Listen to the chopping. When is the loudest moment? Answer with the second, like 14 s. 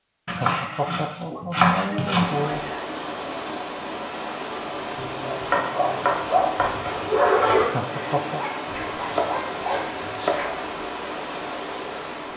2 s.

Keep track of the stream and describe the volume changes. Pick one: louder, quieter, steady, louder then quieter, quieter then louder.
steady.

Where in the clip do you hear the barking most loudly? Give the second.
7 s.